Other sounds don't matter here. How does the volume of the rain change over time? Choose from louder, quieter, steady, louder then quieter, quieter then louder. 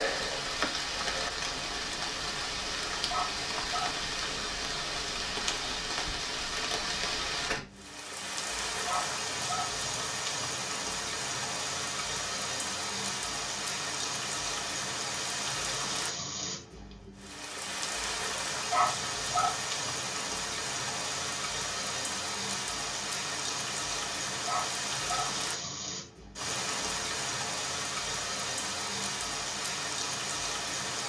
steady.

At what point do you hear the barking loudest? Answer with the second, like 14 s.
19 s.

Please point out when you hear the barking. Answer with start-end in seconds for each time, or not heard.
3.0-4.0, 8.8-9.7, 18.7-19.6, 24.4-25.3.